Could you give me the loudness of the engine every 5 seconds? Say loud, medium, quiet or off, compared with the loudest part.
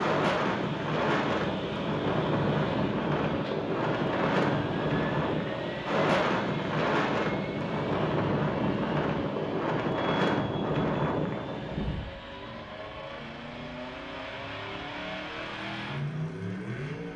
loud, loud, medium, loud.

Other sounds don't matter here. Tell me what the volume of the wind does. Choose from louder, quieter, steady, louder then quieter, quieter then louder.
quieter.